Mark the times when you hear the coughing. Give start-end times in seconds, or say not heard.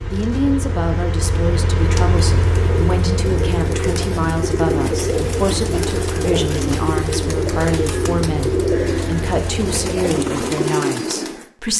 not heard.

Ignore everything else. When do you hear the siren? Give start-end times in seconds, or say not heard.
not heard.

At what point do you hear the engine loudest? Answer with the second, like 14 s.
2 s.